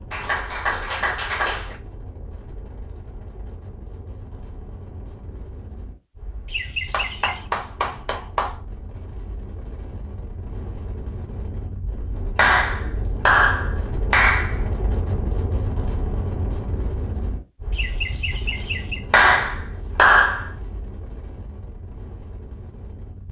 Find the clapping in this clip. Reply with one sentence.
The clapping can be heard from 0.1 to 1.8 s, from 6.9 to 8.6 s, from 12.3 to 14.6 s and from 19.1 to 20.5 s.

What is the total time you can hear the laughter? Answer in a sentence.
The laughter can be heard for 2 seconds in total.